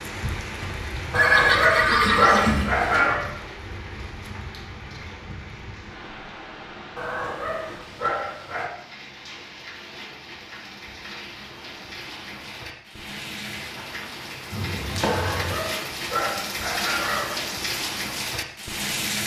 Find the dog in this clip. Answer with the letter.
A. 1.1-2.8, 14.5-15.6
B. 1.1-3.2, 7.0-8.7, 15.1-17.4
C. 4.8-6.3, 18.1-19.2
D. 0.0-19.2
B.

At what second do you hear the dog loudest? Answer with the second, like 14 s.
2 s.